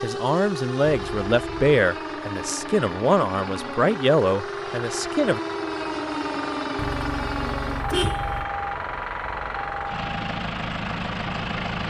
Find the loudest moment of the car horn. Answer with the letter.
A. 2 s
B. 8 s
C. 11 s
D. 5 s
B.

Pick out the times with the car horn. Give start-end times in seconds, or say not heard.
0.8-1.6, 6.8-8.4.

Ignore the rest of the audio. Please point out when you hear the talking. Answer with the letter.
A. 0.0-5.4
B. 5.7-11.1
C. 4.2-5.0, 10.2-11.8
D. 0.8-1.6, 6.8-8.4
A.